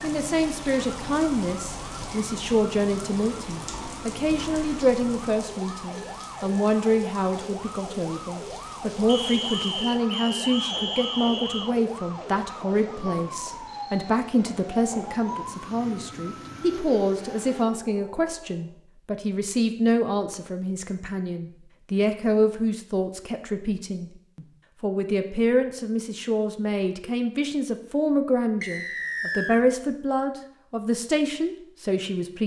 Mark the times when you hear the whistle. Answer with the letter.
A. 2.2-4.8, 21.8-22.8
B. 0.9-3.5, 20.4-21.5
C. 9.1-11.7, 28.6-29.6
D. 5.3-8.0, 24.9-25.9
C.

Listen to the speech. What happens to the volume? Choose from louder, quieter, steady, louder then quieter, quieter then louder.
steady.